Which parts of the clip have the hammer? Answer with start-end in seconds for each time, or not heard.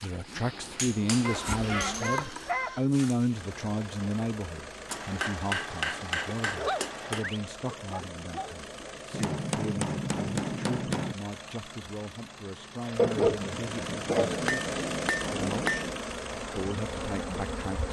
0.8-2.2, 4.9-7.3, 9.1-11.2, 14.1-16.0.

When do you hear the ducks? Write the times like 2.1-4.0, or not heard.
not heard.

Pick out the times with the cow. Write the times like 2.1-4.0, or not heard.
not heard.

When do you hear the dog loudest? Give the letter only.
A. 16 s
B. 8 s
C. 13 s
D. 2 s
C.